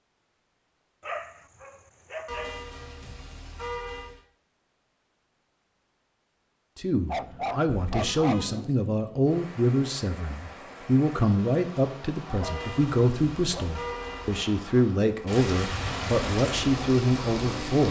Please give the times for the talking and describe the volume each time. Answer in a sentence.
You can hear the talking from 6.8 to 17.8 s, at a steady volume.